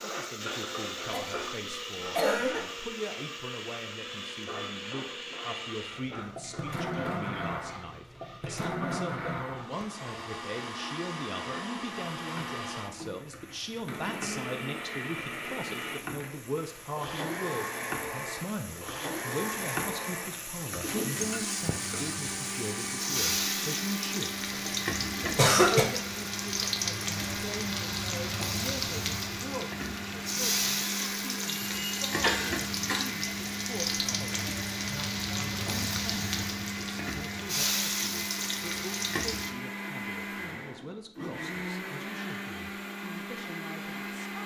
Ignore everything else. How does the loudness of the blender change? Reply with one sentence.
The loudness of the blender stays about the same.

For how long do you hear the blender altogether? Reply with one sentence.
The blender can be heard for 44 seconds in total.